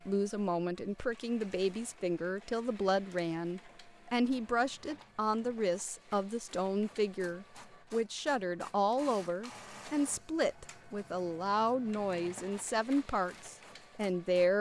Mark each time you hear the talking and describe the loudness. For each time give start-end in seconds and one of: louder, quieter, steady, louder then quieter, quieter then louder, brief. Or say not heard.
0.1-14.5 steady.